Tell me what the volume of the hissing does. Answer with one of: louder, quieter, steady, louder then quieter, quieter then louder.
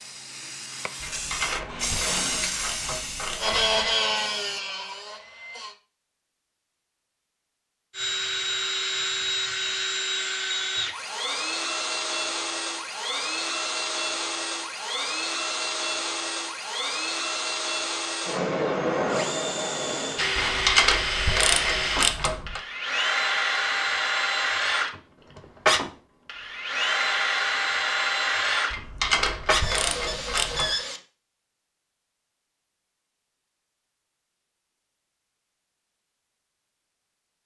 louder then quieter.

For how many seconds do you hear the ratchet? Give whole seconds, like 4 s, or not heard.
7 s.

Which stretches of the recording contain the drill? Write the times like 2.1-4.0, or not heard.
3.4-5.8, 7.9-31.0.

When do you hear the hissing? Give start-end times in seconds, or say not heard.
0.0-4.6.